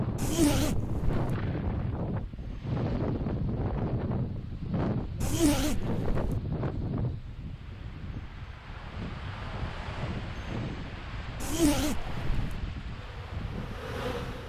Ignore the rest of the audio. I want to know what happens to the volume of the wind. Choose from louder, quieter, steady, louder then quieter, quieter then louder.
quieter.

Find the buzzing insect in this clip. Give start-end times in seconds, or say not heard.
12.9-14.4.